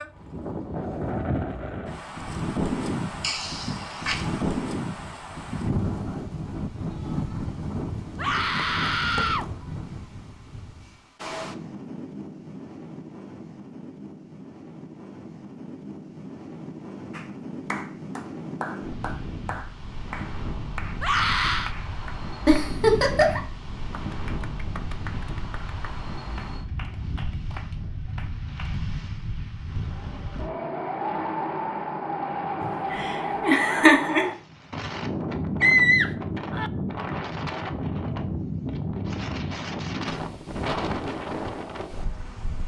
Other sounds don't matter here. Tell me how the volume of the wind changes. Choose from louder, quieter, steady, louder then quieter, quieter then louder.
quieter then louder.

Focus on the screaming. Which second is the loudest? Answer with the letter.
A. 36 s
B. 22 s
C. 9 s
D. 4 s
A.